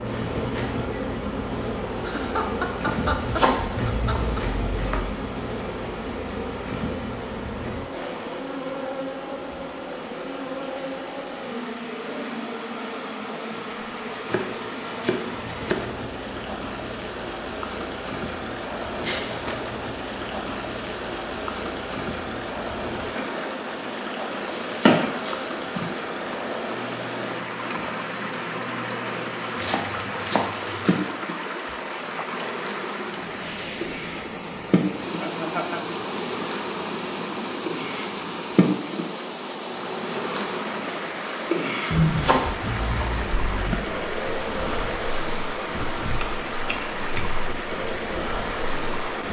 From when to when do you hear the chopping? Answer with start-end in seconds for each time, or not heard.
3.0-5.0, 14.1-15.8, 24.5-25.9, 29.6-31.0, 42.0-43.8.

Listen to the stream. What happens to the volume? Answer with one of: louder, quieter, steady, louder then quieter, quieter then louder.
louder.